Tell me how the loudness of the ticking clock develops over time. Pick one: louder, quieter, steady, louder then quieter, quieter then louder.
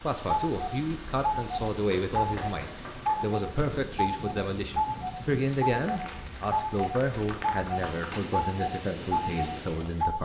steady.